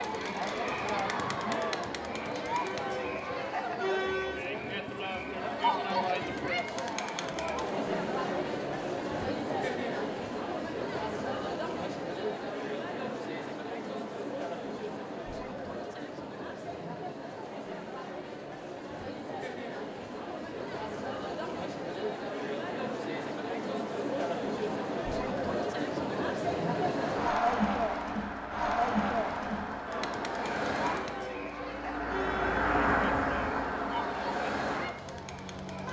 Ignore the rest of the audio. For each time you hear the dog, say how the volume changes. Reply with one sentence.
You can't hear the dog here.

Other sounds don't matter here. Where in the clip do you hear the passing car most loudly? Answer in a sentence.
The volume of the passing car peaks at 33 seconds.